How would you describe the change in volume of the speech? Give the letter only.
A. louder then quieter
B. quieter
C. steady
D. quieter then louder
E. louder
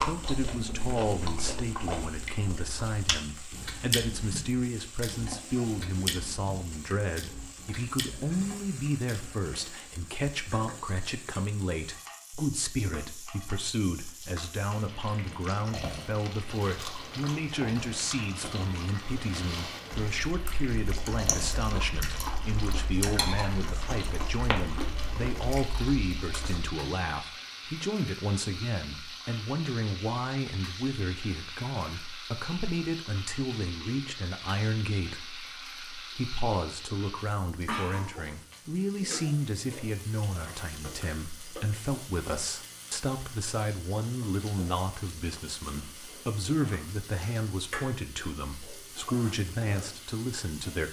C.